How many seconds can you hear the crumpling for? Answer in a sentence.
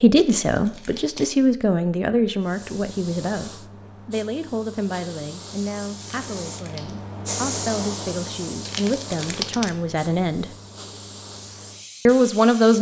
The crumpling can be heard for 3 seconds in total.